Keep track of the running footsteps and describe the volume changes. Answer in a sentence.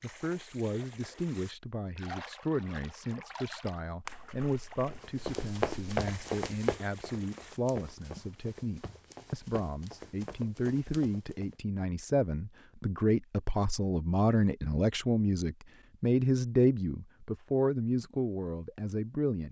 The volume of the running footsteps goes down.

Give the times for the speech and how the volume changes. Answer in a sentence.
The speech can be heard from 0.0 to 19.4 s, getting louder.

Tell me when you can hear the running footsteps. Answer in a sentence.
You can hear the running footsteps from 4.9 to 11.6 s.